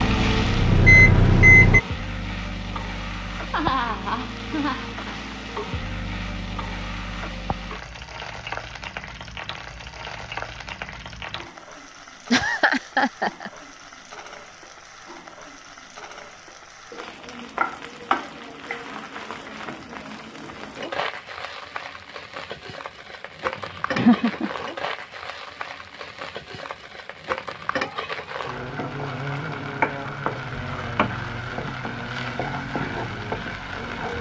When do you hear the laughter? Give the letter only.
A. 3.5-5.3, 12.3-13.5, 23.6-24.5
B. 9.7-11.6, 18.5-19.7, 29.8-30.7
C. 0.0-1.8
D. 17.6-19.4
A.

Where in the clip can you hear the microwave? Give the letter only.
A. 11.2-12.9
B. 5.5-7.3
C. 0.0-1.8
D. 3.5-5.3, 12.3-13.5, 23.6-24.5
C.